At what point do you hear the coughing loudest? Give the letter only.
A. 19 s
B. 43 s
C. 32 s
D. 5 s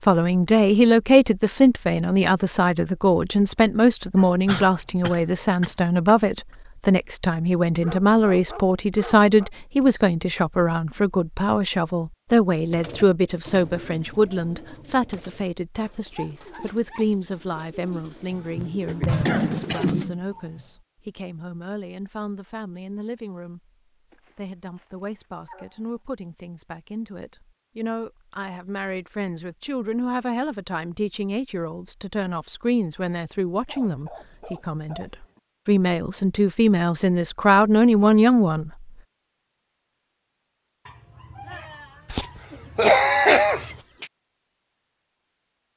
B.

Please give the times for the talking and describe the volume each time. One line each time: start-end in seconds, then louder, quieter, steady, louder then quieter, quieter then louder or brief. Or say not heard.
0.0-38.9 quieter then louder.